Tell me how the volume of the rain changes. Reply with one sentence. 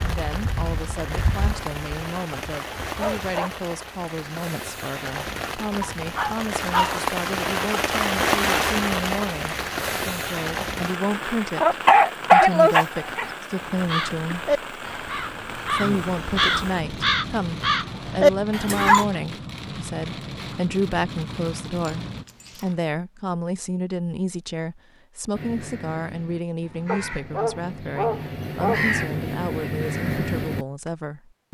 The volume of the rain goes up, then down.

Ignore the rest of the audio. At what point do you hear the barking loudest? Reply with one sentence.
The loudest moment of the barking is at 12 seconds.